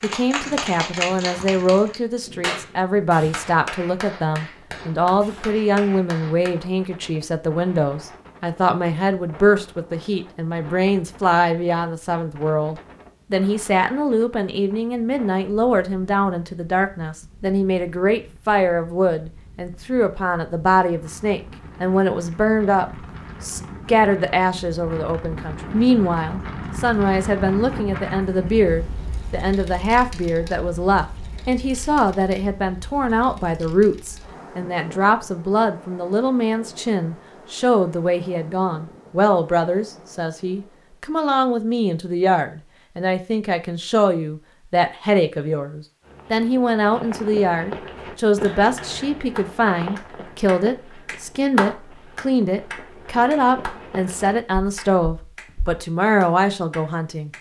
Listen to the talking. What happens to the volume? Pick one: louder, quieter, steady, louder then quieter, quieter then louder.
steady.